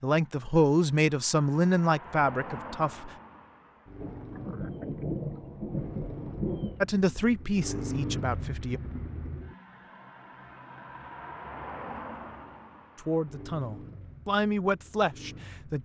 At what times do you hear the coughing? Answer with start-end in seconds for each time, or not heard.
not heard.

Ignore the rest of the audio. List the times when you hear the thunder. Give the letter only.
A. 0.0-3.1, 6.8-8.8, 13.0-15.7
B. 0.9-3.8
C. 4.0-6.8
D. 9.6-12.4
C.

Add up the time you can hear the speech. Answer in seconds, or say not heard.
8 s.